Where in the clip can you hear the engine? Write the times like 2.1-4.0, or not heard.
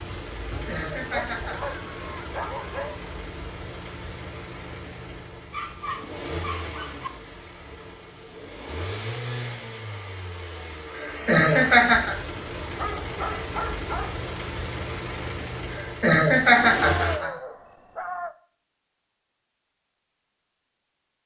0.0-17.2.